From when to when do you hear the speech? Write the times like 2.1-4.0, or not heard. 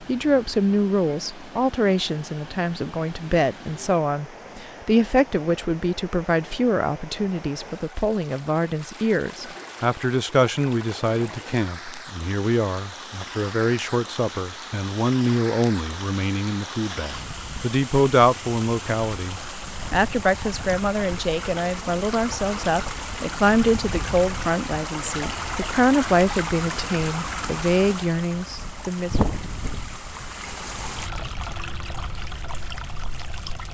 0.0-29.2.